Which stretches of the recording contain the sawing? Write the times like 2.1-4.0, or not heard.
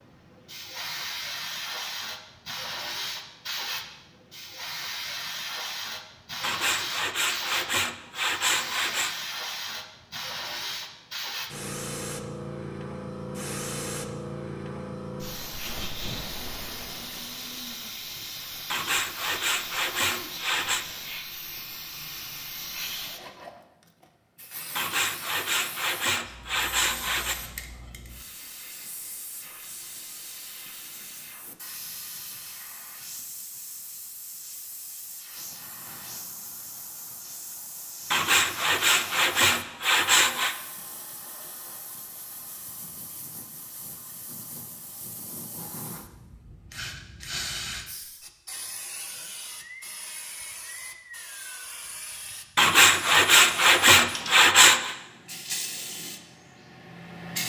6.4-9.2, 18.7-20.9, 24.8-27.4, 38.1-40.5, 52.5-55.0.